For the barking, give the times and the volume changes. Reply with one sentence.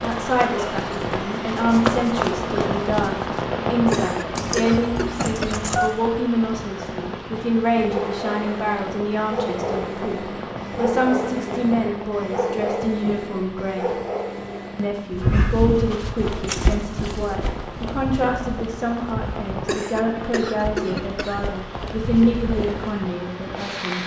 The barking can be heard from 7.8 to 15.5 s, at a steady volume.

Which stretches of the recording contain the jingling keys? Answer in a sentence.
The jingling keys can be heard from 4.3 to 5.9 s and from 16.2 to 17.4 s.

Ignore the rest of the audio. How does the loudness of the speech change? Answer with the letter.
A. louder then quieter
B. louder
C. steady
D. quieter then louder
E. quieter
C.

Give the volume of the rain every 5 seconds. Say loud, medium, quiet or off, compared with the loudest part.
loud, medium, medium, medium, medium.